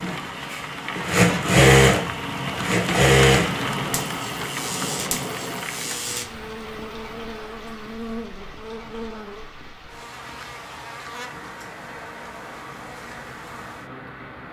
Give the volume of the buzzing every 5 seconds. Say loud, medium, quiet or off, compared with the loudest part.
loud, loud, medium.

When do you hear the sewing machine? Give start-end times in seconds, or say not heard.
0.0-3.5.